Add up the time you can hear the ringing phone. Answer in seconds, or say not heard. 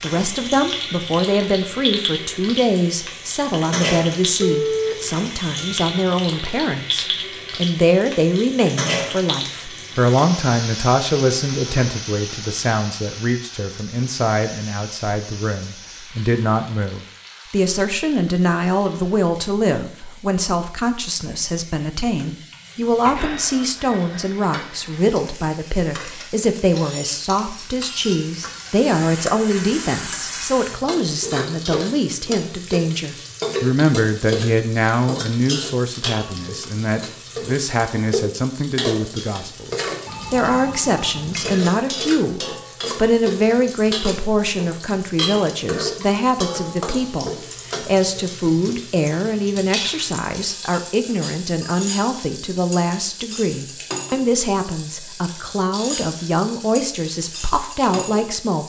3 s.